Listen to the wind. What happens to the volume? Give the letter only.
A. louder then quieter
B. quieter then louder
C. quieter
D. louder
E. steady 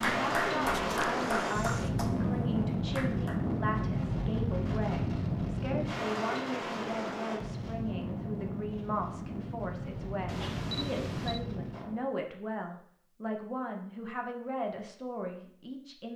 C.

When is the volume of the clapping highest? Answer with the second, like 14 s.
1 s.